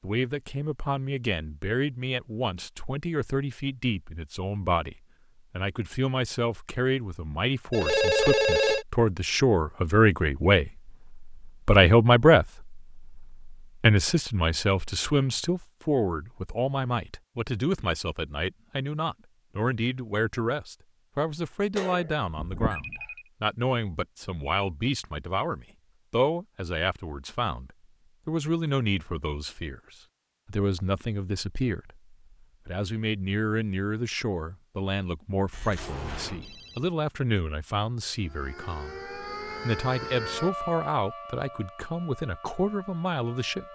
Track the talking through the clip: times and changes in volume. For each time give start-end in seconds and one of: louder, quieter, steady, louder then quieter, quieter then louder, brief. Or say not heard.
0.0-43.6 louder then quieter.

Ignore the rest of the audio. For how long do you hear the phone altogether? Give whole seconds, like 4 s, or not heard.
4 s.